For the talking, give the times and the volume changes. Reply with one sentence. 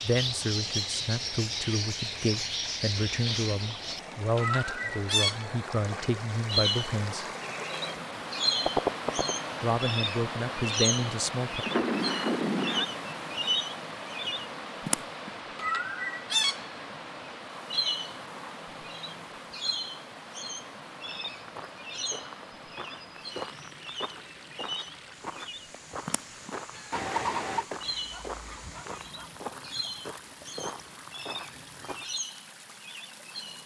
You can hear the talking from 0.0 to 7.2 s, at a steady volume; and briefly from 9.6 to 11.7 s.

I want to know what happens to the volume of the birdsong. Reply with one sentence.
The loudness of the birdsong goes down.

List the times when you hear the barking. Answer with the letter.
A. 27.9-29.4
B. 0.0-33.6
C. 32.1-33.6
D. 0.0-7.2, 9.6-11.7
A.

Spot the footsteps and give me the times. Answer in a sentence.
The footsteps can be heard from 20.9 to 32.2 s.